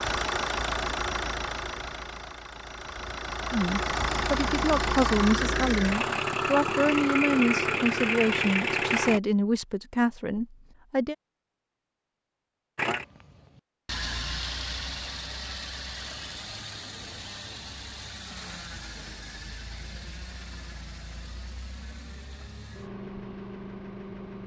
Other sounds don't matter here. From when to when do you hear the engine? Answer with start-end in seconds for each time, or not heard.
0.0-9.2, 12.8-24.4.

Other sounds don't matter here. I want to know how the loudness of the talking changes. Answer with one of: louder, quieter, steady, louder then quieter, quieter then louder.
steady.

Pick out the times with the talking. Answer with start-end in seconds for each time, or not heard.
3.5-11.2.